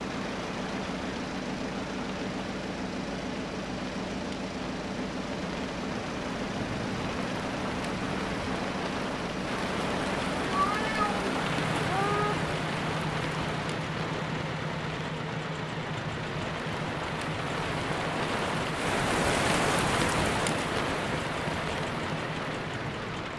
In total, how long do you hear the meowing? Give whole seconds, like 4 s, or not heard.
2 s.